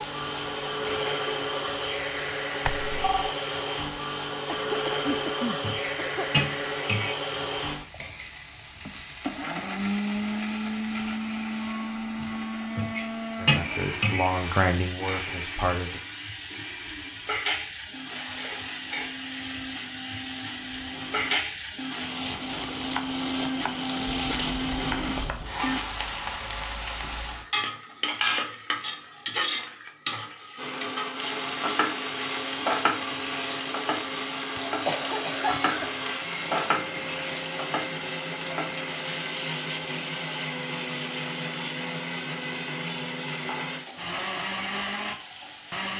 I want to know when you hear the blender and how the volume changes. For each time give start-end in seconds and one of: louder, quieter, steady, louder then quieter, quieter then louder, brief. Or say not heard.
0.0-25.9 quieter then louder
30.6-45.9 steady.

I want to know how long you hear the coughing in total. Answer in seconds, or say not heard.
5 s.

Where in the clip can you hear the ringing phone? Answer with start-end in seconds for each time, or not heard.
2.6-3.4.